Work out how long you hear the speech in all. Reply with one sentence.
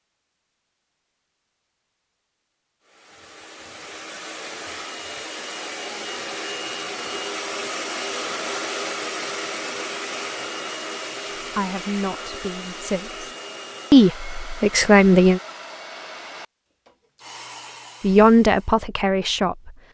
The speech can be heard for 5 seconds in total.